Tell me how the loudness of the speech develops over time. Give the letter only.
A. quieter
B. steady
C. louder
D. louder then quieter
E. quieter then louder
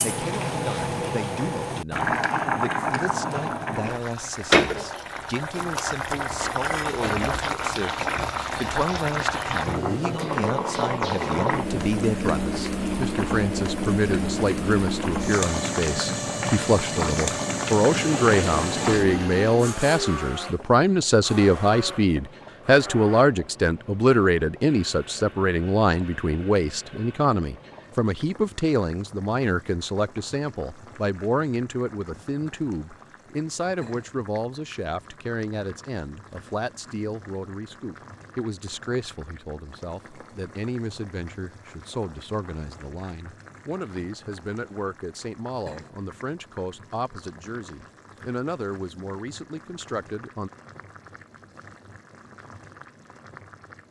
D.